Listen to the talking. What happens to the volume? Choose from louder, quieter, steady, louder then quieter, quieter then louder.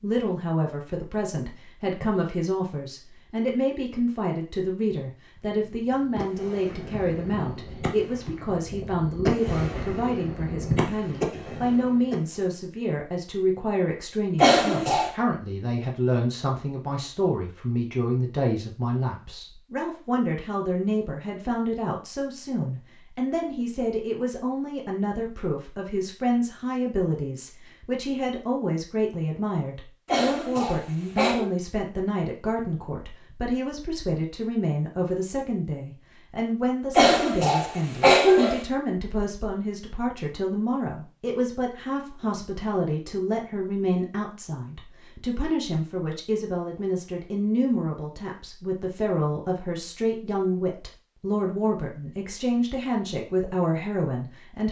steady.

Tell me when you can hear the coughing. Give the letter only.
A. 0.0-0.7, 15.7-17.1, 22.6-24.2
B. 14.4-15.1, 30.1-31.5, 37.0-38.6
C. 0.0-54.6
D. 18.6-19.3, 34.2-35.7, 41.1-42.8
B.